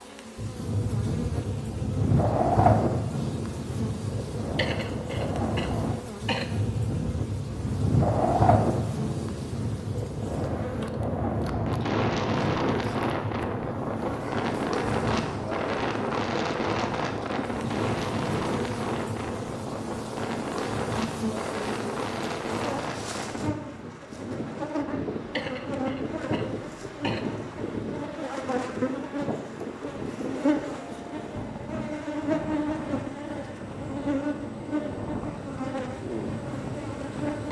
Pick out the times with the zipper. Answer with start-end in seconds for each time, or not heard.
not heard.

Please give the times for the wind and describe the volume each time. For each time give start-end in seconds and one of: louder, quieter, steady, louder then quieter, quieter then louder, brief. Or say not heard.
0.3-37.4 quieter.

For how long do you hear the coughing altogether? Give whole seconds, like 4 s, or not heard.
4 s.